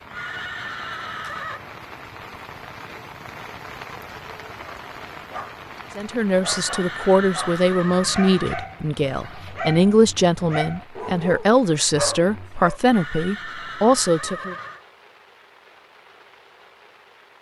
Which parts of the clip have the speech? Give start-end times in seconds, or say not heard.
6.0-14.6.